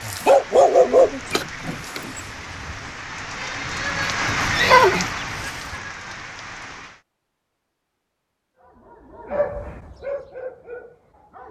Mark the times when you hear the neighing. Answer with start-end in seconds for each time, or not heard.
4.0-5.5.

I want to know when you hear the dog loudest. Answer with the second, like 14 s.
1 s.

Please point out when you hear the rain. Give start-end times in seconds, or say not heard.
0.0-7.0.